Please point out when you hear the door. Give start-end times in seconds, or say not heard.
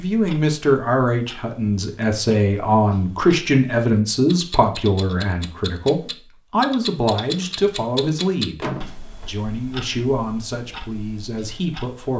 8.6-9.3.